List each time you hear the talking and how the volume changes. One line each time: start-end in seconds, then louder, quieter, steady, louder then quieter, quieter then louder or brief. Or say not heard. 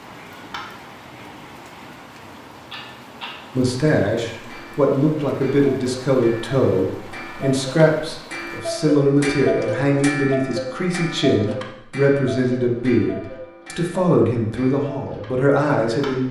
3.5-16.2 steady.